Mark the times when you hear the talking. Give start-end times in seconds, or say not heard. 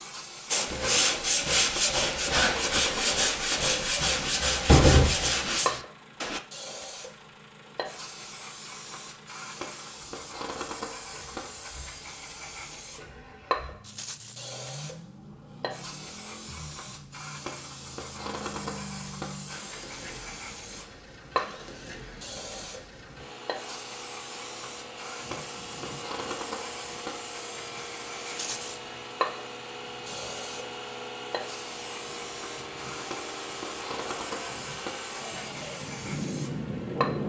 not heard.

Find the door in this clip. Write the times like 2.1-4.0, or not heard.
3.9-5.2.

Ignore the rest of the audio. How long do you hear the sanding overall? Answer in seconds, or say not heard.
6 s.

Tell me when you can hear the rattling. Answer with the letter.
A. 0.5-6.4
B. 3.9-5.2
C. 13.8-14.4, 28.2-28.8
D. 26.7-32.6
C.